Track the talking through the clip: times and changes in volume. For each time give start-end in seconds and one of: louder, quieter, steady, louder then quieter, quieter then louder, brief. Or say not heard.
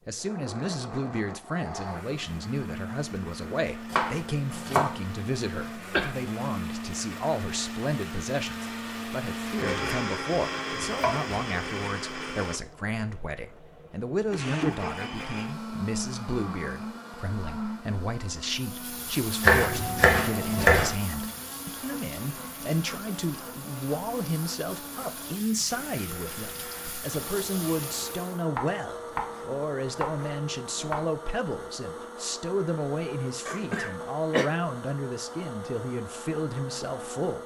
0.1-37.4 steady.